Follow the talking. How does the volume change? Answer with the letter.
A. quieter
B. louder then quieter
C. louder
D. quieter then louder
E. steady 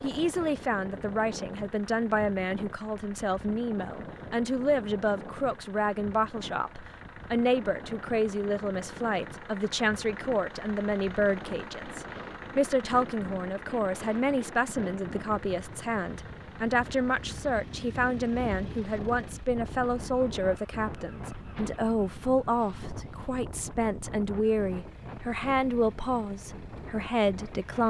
E.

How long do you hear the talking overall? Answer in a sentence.
The talking can be heard for 28 seconds in total.